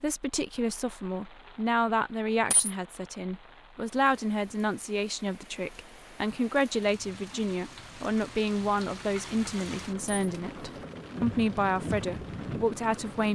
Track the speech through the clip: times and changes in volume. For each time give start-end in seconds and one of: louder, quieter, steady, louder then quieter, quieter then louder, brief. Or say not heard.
0.0-13.2 steady.